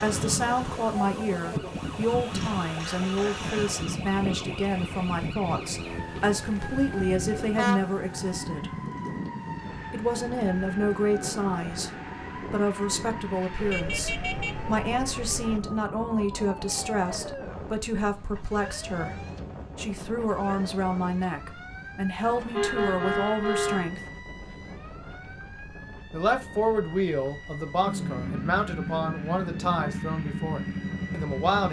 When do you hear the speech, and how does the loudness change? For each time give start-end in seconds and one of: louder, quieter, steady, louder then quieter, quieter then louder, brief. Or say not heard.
0.0-8.8 steady
9.9-24.1 steady
26.1-31.6 quieter.